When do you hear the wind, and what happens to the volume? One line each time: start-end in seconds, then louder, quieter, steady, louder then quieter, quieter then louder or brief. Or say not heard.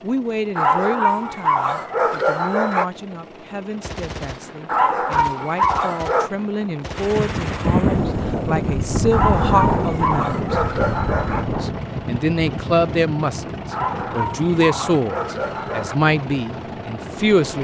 6.9-17.5 quieter.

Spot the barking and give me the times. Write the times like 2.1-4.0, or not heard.
0.6-2.9, 4.7-6.3, 9.1-11.4, 13.7-15.9.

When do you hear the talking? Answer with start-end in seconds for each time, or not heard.
0.0-10.6, 11.6-17.5.